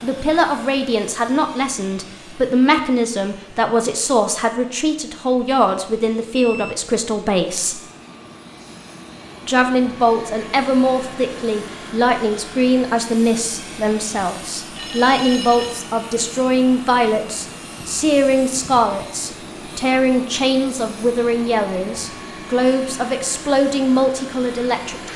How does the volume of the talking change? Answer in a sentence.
The loudness of the talking stays about the same.